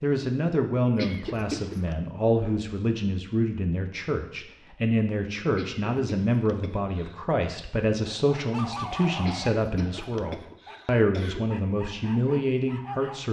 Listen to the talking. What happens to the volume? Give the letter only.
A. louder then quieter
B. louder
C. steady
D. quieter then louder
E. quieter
C.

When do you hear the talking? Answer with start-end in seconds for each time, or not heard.
0.0-13.2.